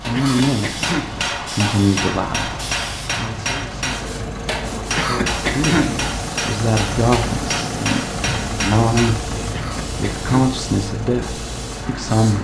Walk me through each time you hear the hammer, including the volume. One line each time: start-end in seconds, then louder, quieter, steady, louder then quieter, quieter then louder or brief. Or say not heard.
0.0-9.2 steady.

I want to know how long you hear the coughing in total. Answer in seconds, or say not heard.
3 s.